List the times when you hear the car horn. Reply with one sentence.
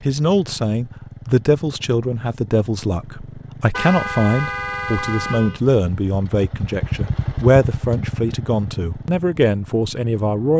You can hear the car horn from 3.7 to 5.6 s.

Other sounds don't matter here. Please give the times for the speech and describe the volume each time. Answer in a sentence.
You can hear the speech from 0.0 to 10.5 s, at a steady volume.